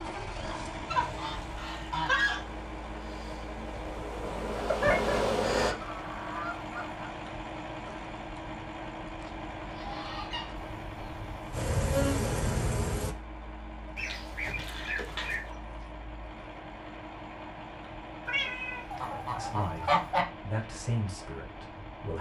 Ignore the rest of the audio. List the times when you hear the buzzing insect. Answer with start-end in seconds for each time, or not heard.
2.2-5.8, 10.5-13.2.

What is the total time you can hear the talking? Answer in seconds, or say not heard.
3 s.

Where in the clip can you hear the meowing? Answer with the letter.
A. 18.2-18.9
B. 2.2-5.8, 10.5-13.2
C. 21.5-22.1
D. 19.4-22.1
A.